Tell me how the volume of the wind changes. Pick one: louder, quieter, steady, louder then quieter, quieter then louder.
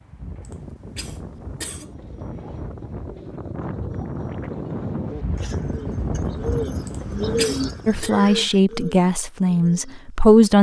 louder.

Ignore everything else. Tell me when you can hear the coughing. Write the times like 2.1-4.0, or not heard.
0.4-1.9, 6.8-8.1.